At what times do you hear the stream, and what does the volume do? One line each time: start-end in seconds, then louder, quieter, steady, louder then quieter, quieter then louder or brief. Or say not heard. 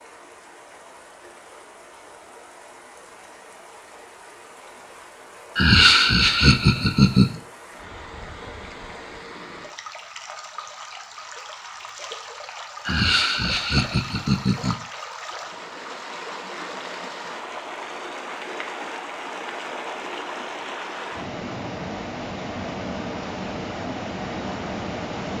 0.0-25.3 louder.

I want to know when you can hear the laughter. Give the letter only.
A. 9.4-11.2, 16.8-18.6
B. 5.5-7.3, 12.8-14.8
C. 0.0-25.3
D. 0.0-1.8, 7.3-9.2
B.